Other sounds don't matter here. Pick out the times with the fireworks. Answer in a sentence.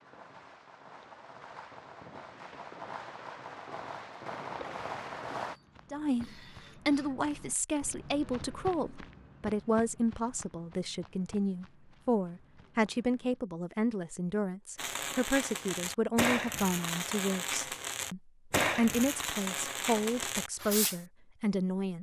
You can hear the fireworks from 0.0 to 5.5 s and from 14.8 to 21.0 s.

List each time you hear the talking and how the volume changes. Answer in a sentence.
The talking can be heard from 5.9 to 21.9 s, at a steady volume.